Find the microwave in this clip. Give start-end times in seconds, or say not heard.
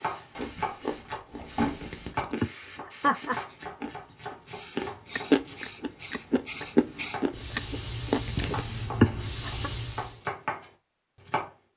not heard.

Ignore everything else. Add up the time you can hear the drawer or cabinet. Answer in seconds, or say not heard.
2 s.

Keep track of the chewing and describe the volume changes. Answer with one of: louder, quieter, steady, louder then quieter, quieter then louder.
louder.